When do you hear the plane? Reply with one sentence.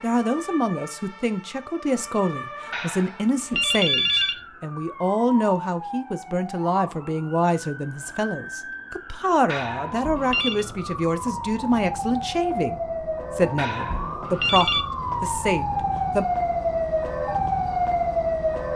The plane can't be heard in this clip.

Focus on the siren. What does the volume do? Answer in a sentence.
The loudness of the siren goes up.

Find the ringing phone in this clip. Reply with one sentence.
The ringing phone can be heard from 2.7 to 4.3 s, from 9.4 to 10.7 s and from 13.6 to 14.8 s.